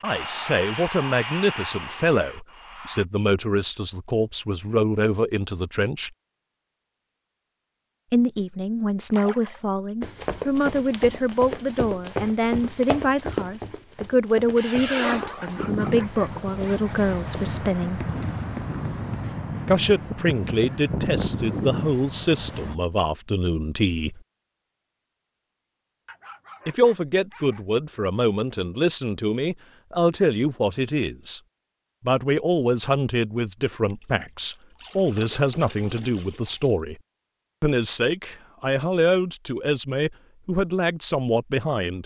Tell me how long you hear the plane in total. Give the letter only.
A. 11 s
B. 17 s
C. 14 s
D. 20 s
A.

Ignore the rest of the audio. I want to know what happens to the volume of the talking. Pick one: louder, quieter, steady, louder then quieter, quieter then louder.
steady.